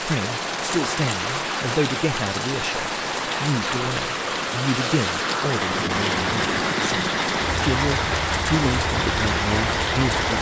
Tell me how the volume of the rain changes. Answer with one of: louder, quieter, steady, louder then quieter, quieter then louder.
steady.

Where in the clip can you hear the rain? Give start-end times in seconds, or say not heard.
0.0-10.3.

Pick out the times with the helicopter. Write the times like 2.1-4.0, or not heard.
5.7-10.3.